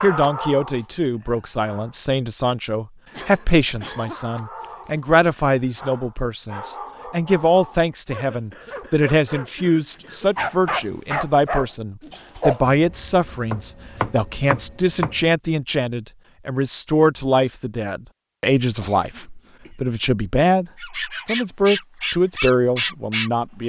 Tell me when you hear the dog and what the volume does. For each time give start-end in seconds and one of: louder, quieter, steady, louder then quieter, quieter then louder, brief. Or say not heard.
0.0-2.0 brief
4.1-12.7 louder
20.8-23.6 brief.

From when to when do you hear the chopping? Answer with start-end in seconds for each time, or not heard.
12.7-15.2.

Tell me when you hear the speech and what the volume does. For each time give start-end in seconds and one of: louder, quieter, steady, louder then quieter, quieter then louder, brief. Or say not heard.
0.0-23.6 steady.